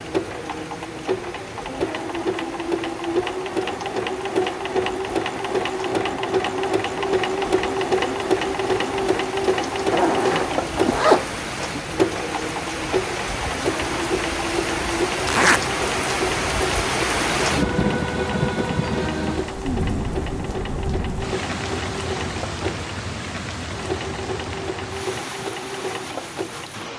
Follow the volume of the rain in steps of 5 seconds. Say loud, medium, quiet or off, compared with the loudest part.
quiet, quiet, medium, loud, medium, medium.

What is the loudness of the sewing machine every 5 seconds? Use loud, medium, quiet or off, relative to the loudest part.
loud, loud, loud, medium, medium, medium.